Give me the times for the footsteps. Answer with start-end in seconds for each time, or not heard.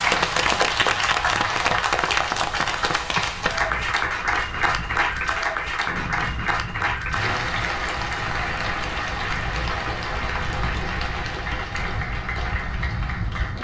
not heard.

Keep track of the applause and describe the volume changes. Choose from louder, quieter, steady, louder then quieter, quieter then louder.
quieter.